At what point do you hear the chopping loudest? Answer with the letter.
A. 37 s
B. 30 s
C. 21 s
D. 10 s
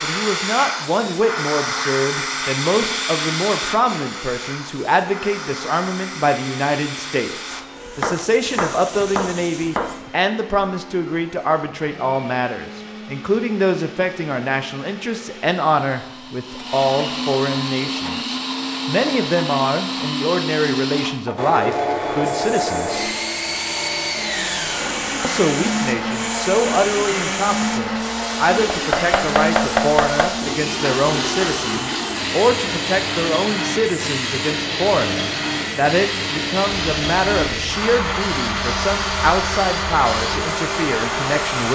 B.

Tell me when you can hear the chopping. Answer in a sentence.
You can hear the chopping from 7.5 to 10.1 s and from 28.7 to 30.4 s.